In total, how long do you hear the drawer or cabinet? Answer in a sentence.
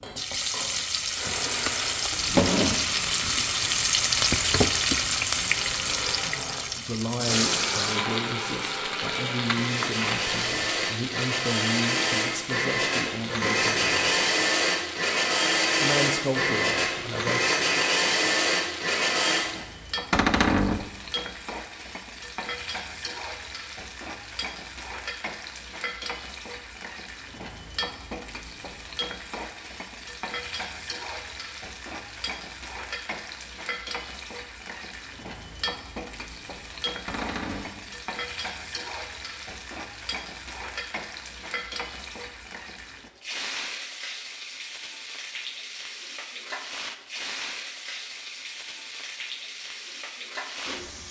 The drawer or cabinet can be heard for 2 seconds in total.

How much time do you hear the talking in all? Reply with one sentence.
You can hear the talking for 9 seconds altogether.